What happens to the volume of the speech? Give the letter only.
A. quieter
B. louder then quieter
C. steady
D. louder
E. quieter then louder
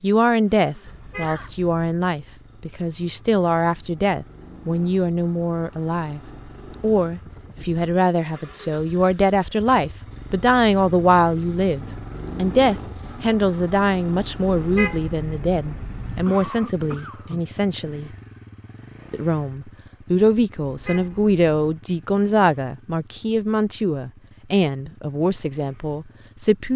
C.